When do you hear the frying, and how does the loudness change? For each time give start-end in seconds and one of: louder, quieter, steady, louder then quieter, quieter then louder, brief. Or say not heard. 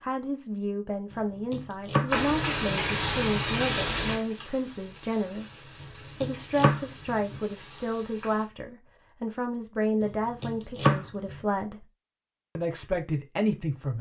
2.1-8.5 quieter.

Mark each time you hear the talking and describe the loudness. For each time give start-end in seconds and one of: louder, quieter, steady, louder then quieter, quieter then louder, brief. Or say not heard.
0.0-11.8 steady
12.6-13.9 brief.